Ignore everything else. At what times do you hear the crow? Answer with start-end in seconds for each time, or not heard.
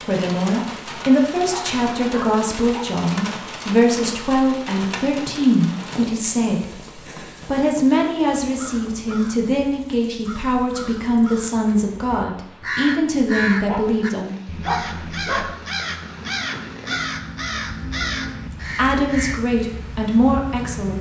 8.4-19.4.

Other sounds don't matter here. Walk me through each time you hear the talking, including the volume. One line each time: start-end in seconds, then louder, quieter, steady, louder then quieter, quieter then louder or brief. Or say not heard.
0.1-14.3 steady
18.8-20.9 brief.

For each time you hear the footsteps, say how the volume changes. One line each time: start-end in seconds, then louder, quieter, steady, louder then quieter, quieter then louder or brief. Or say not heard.
not heard.